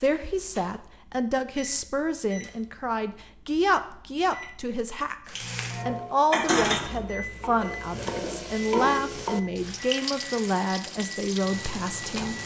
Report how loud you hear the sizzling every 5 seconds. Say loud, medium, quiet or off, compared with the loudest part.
off, loud, loud.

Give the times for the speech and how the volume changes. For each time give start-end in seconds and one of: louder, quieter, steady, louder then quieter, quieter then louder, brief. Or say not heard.
0.0-12.3 steady.